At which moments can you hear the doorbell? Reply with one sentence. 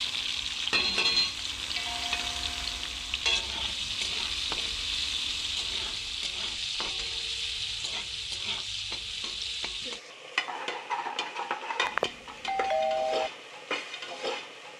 The doorbell can be heard from 11.8 to 13.3 s.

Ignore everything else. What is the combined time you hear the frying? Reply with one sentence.
The frying can be heard for 15 seconds in total.